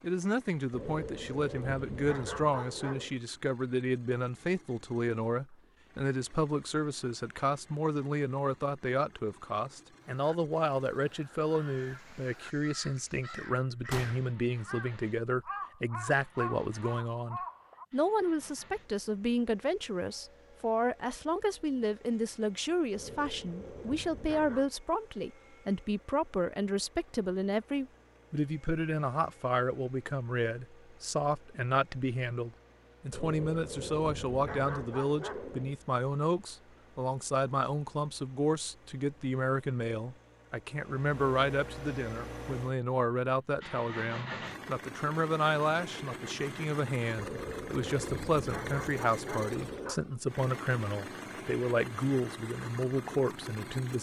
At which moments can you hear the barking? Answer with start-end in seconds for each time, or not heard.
0.7-3.1, 22.9-24.7, 33.1-35.8, 47.1-50.0.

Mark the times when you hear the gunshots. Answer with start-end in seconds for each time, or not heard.
13.9-14.3.